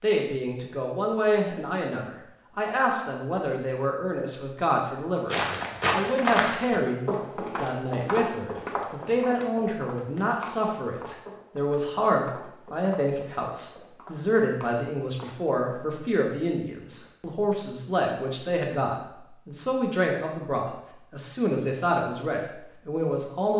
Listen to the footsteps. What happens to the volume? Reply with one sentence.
The loudness of the footsteps goes down.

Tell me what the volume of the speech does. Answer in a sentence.
The volume of the speech stays about the same.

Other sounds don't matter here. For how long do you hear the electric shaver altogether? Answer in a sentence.
The electric shaver can't be heard in this clip.